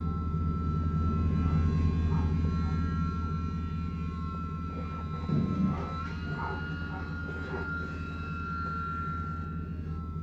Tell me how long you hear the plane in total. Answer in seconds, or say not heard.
10 s.